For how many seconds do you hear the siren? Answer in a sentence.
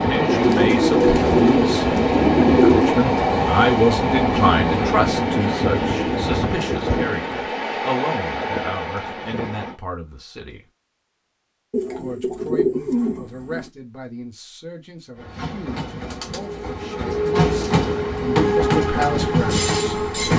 The siren can't be heard in this clip.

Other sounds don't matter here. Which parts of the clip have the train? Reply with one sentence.
The train can be heard from 0.0 to 9.8 s and from 15.2 to 20.3 s.